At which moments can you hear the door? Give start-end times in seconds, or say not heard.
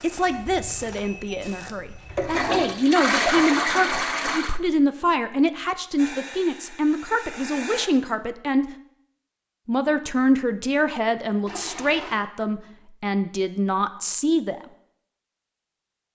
not heard.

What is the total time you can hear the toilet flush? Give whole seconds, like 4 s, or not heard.
3 s.